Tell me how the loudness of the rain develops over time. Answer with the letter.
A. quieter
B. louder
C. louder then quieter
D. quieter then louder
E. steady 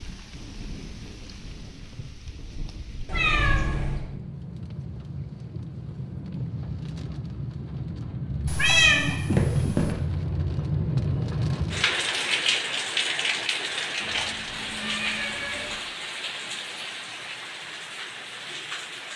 C.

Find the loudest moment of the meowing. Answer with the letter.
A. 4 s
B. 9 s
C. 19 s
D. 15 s
B.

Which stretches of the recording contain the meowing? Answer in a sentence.
The meowing can be heard from 3.0 to 4.0 s, from 8.4 to 9.9 s and from 14.0 to 15.8 s.